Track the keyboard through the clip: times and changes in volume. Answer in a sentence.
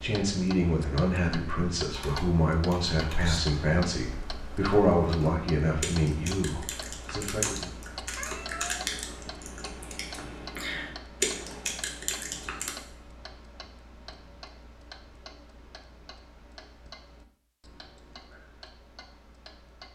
The keyboard can be heard from 1.9 to 12.7 s, getting louder.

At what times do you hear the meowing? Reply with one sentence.
The meowing can be heard from 8.2 to 8.8 s.